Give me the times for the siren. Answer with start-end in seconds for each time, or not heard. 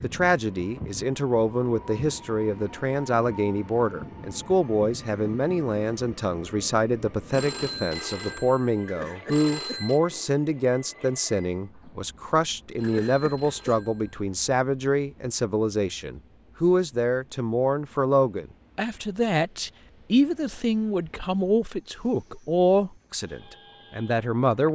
not heard.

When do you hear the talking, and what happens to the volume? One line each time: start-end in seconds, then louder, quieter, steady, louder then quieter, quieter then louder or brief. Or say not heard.
0.0-24.6 steady.